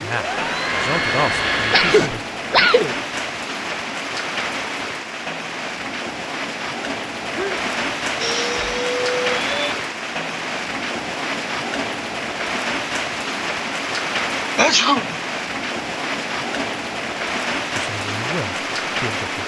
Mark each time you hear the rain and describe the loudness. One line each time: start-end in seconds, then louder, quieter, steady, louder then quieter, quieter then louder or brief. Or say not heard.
0.0-19.4 steady.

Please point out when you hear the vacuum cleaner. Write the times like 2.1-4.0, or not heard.
0.0-2.1, 8.2-9.8.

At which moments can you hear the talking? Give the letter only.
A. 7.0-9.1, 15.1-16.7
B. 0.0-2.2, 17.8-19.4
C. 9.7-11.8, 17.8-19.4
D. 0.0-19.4
B.